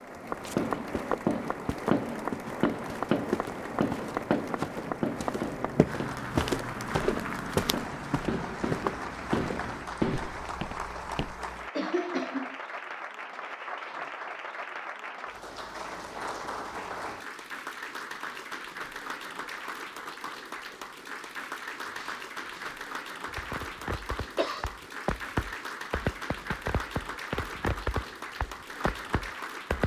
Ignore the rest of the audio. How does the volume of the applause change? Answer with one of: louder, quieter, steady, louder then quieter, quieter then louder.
steady.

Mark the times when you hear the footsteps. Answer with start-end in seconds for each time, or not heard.
0.3-11.4.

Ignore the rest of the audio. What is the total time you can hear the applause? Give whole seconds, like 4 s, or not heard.
30 s.